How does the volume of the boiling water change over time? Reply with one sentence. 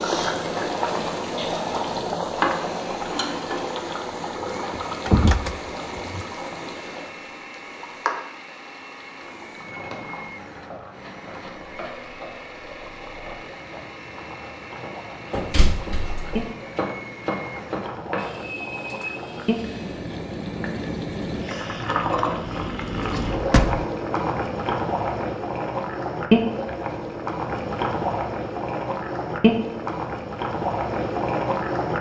The volume of the boiling water goes down, then up.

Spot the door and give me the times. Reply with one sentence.
You can hear the door from 4.7 to 6.2 s, from 15.3 to 16.5 s and from 23.3 to 23.9 s.